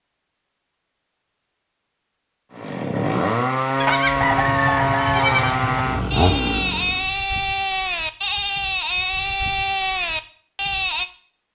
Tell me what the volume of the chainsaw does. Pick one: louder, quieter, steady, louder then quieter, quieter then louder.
steady.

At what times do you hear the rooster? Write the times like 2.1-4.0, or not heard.
4.2-6.2.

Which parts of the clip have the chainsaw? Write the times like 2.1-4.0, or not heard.
2.5-7.0.